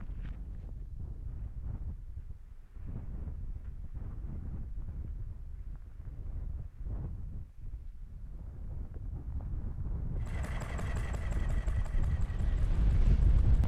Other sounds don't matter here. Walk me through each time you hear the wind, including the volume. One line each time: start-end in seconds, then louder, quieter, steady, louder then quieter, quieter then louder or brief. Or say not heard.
0.0-13.6 louder.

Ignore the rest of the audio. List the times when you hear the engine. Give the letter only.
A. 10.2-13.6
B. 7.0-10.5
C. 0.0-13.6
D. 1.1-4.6
A.